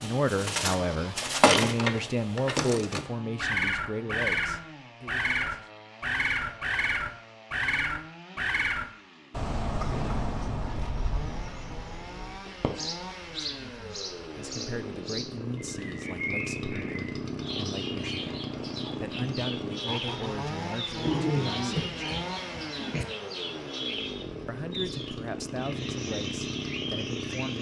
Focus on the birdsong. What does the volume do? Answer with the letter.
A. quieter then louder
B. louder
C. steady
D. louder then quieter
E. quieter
E.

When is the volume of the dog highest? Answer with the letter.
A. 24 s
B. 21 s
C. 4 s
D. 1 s
B.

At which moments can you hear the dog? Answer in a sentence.
The dog can be heard from 21.0 to 23.1 s.